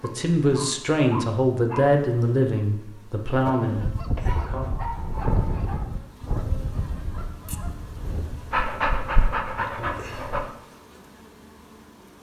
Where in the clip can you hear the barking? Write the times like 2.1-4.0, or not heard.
0.0-1.9, 4.2-5.8, 8.5-10.4.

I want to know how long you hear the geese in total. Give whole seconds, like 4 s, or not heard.
5 s.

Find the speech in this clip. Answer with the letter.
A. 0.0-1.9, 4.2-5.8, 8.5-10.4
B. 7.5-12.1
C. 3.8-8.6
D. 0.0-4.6
D.